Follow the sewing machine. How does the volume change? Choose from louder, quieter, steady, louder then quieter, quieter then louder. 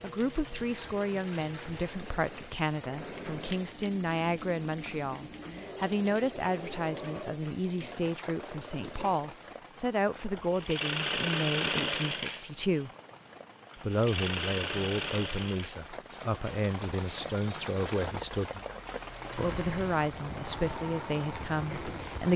louder then quieter.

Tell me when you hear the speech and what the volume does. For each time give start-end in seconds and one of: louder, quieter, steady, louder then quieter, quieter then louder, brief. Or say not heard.
0.0-12.9 steady
13.8-18.6 steady
19.4-22.3 brief.